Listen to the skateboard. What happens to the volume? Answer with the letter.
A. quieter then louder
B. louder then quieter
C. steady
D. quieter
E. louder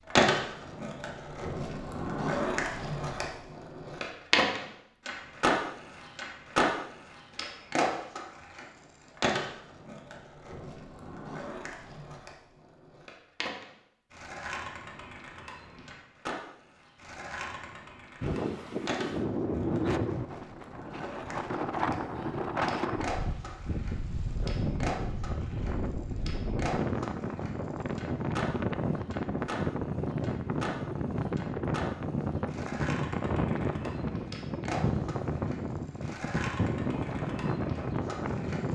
D.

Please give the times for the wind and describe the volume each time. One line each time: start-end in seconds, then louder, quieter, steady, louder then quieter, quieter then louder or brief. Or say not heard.
18.2-38.7 steady.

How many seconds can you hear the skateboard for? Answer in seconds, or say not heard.
39 s.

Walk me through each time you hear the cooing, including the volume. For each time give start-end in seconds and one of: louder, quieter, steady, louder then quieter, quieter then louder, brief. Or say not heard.
not heard.